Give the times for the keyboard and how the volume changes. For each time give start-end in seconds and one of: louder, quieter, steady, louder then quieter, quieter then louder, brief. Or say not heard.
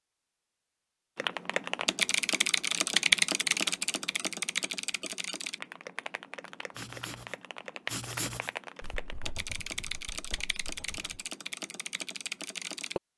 1.1-13.0 quieter.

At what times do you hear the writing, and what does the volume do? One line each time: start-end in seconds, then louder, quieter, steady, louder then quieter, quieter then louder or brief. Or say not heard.
6.8-11.2 louder then quieter.